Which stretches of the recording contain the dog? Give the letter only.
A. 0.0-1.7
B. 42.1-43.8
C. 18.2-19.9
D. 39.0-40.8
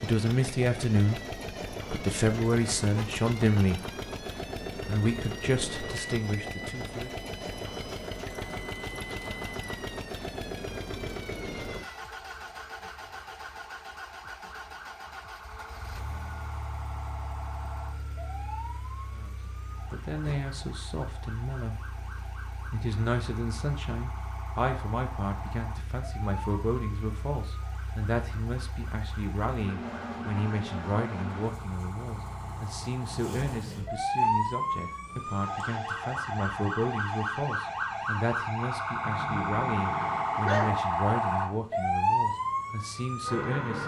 D.